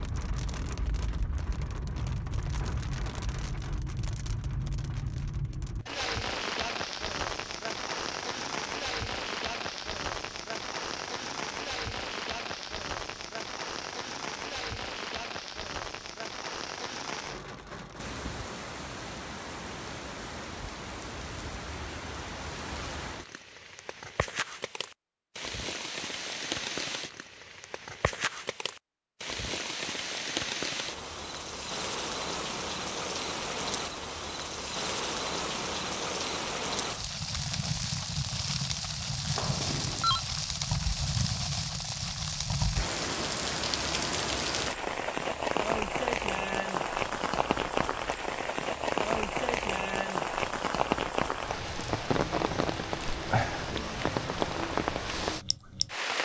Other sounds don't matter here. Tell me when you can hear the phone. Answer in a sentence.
The phone can be heard from 39.4 to 40.2 s.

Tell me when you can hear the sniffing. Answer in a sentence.
You can't hear the sniffing here.